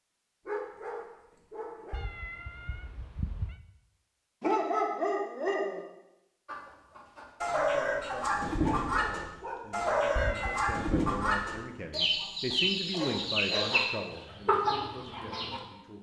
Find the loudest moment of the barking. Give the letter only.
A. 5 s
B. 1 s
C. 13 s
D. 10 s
A.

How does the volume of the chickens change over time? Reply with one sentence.
The loudness of the chickens stays about the same.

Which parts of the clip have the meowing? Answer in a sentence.
The meowing can be heard from 1.9 to 3.5 s and from 10.2 to 10.9 s.